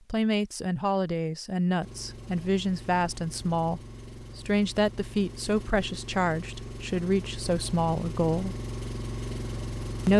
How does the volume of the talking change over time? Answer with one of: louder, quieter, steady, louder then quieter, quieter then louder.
steady.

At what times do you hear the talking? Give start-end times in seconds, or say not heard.
0.1-8.6.